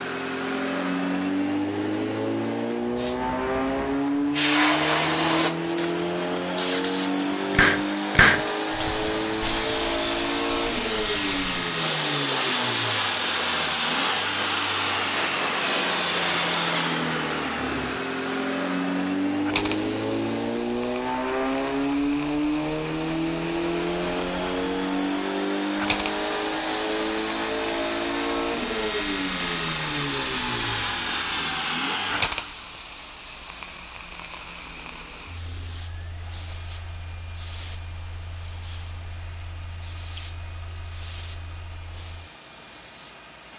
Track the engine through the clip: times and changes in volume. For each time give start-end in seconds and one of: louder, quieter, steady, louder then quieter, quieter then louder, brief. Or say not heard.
0.0-43.5 quieter.